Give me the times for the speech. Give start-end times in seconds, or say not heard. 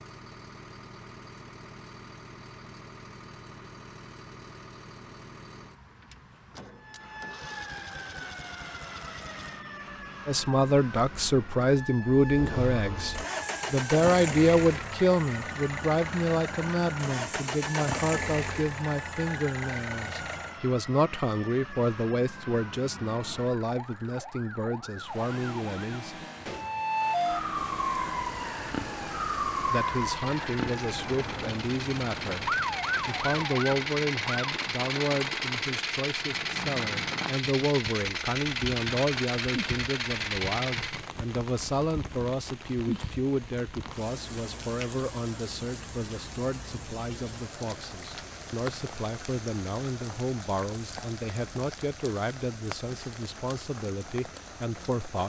10.2-26.2, 29.6-55.2.